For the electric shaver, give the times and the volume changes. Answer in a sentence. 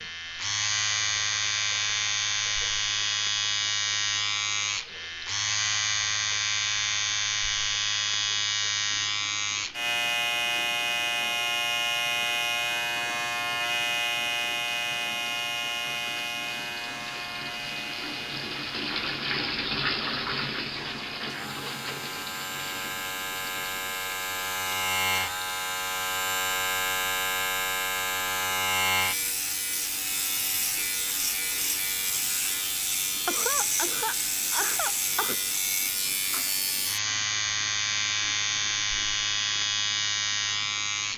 You can hear the electric shaver from 0.0 to 41.1 s, getting quieter then louder.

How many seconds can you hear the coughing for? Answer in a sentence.
The coughing can be heard for 2 seconds in total.